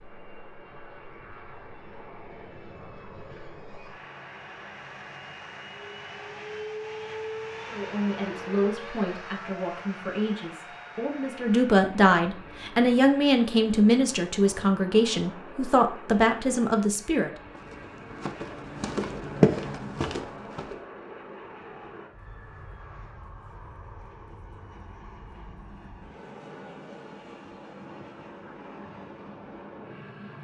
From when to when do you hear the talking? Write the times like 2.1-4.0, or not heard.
7.7-17.3.